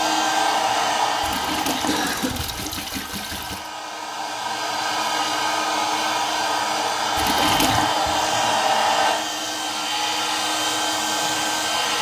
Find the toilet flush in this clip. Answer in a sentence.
The toilet flush can be heard from 1.2 to 3.7 s and from 7.2 to 7.9 s.